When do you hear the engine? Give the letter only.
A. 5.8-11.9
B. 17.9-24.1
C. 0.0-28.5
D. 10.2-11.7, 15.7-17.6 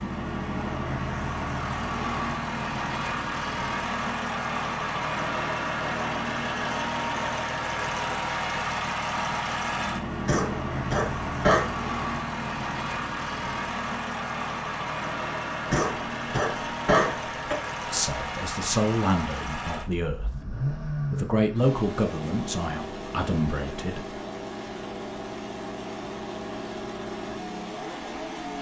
C.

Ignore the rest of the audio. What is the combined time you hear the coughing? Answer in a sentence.
The coughing can be heard for 3 seconds in total.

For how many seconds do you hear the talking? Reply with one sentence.
You can hear the talking for 6 seconds altogether.